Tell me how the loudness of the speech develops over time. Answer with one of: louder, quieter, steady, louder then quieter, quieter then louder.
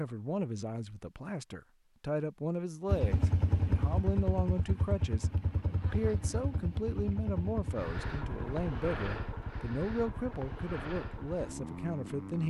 steady.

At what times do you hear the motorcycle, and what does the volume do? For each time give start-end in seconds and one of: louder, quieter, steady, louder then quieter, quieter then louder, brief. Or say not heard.
2.9-12.4 quieter.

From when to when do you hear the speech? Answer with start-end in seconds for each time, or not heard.
0.0-12.4.